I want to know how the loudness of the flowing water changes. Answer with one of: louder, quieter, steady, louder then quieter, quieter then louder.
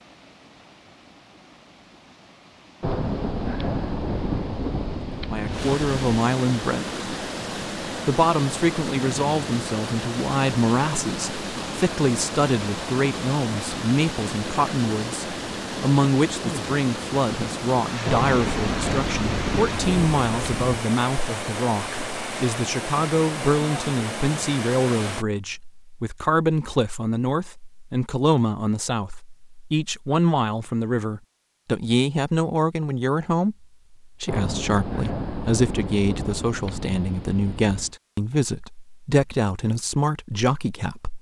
louder.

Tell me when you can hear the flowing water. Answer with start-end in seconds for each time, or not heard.
0.0-25.2.